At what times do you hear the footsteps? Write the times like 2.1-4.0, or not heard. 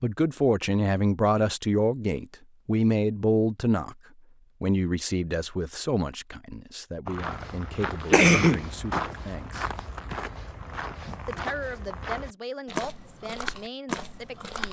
7.0-14.6.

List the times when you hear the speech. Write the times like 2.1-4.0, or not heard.
0.0-4.0, 4.6-9.7, 11.2-14.6.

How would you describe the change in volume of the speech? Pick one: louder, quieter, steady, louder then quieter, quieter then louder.
quieter.